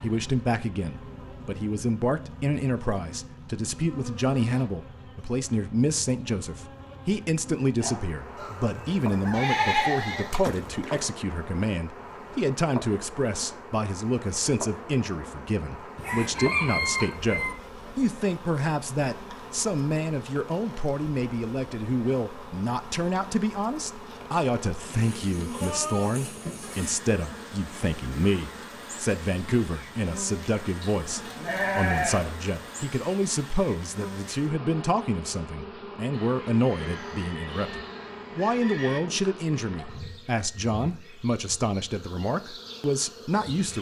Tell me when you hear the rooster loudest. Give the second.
17 s.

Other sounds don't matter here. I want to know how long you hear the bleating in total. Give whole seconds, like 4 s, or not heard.
6 s.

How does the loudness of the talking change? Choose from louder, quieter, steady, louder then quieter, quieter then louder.
steady.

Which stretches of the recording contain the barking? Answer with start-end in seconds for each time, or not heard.
not heard.